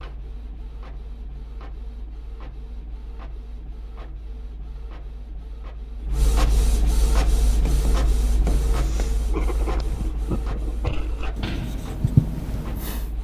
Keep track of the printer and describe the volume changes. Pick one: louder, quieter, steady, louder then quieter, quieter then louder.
louder then quieter.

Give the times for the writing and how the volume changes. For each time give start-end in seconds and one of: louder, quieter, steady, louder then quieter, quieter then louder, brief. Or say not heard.
7.0-13.1 louder.